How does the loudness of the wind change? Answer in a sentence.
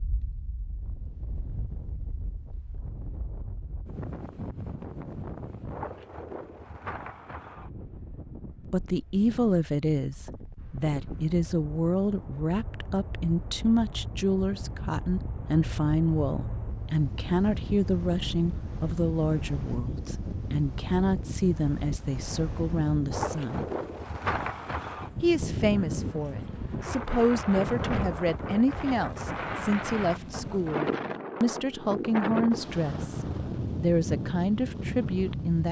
The volume of the wind goes up.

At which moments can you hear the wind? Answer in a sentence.
The wind can be heard from 0.0 to 35.6 s.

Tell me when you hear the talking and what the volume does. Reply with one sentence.
You can hear the talking from 8.7 to 23.6 s, at a steady volume; and from 25.2 to 35.6 s, at a steady volume.